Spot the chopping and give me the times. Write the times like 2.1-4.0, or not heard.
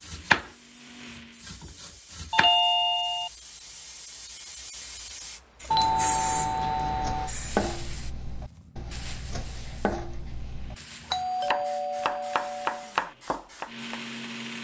0.0-2.5, 6.8-10.8, 11.4-14.1.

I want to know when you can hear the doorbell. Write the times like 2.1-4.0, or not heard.
2.3-3.3, 5.7-7.3, 11.1-12.9.